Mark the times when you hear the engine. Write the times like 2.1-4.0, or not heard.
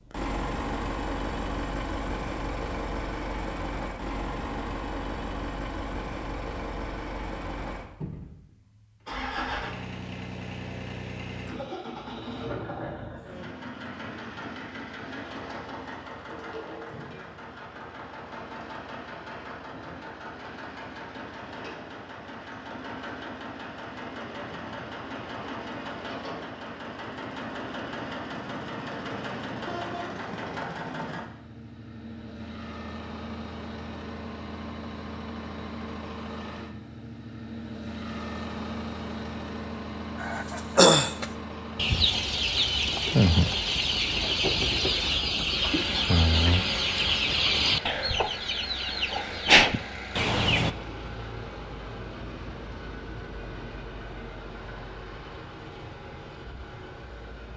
0.0-57.5.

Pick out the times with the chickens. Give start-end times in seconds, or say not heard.
40.2-50.8.